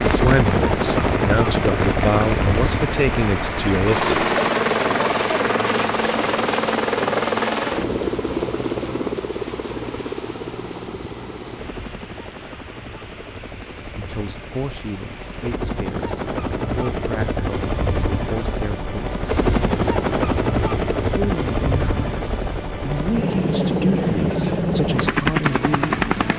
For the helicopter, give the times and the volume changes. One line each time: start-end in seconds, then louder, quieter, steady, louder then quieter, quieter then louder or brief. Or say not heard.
0.0-26.3 quieter then louder.